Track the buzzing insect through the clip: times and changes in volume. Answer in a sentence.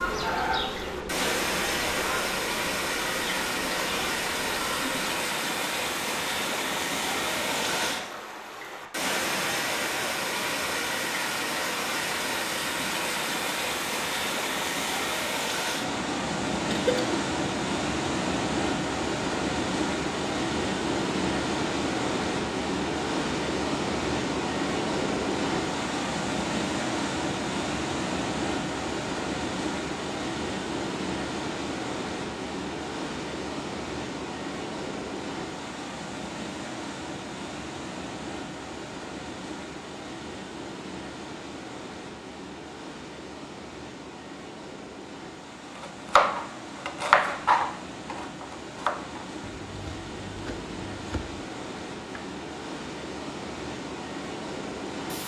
The buzzing insect can be heard from 0.0 to 5.2 s, getting quieter.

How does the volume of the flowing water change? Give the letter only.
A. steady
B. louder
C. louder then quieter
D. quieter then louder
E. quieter
E.